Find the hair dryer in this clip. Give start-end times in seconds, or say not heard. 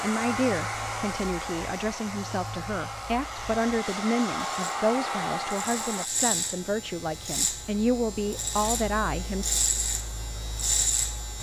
0.0-6.1.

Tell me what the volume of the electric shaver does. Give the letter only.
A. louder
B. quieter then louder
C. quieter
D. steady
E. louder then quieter
A.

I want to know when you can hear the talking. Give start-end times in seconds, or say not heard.
0.0-9.5.